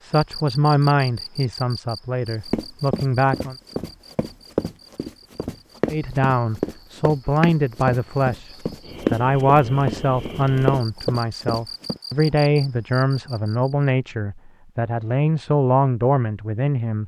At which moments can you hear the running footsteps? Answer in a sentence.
The running footsteps can be heard from 2.5 to 12.0 s.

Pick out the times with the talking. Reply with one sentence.
The talking can be heard from 0.0 to 3.5 s and from 5.8 to 17.0 s.